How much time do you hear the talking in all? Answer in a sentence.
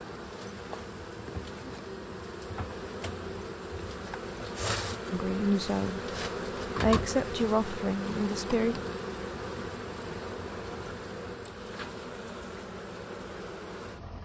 You can hear the talking for 3 seconds altogether.